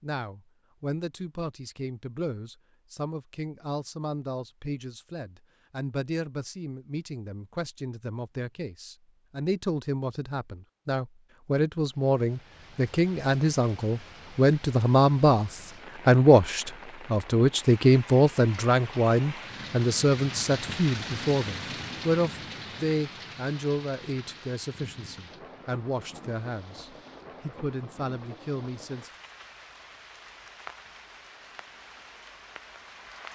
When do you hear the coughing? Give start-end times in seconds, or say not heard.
not heard.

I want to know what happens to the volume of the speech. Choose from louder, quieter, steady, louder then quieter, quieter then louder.
louder then quieter.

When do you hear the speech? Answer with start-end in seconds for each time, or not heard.
0.0-29.1.